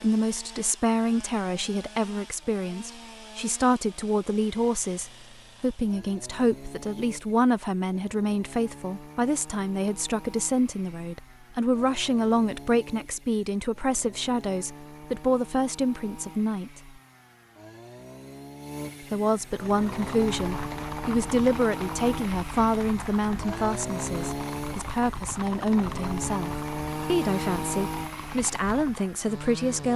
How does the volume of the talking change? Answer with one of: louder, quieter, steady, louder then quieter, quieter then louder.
steady.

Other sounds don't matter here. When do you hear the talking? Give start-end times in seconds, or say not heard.
0.0-16.9, 19.1-29.9.